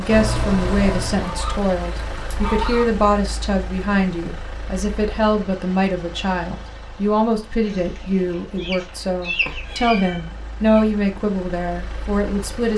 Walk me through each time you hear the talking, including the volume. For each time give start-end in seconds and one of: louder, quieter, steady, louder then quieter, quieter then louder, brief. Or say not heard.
0.0-12.7 steady.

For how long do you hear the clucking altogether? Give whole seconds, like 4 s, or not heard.
4 s.